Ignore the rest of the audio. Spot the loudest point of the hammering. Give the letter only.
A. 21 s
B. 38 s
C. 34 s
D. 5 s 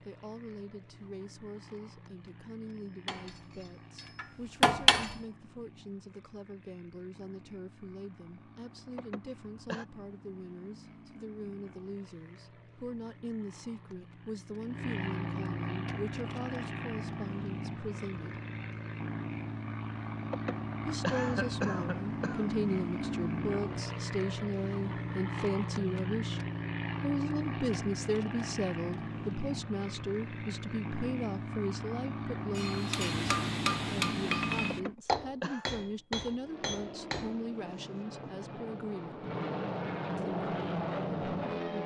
D.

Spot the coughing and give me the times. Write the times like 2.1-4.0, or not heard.
8.9-9.8, 20.3-22.4, 34.7-35.7.